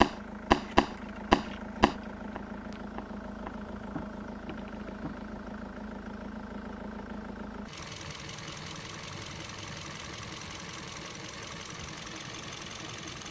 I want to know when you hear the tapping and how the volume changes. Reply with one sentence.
The tapping can be heard from 0.0 to 5.2 s, getting quieter.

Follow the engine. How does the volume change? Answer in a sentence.
The loudness of the engine stays about the same.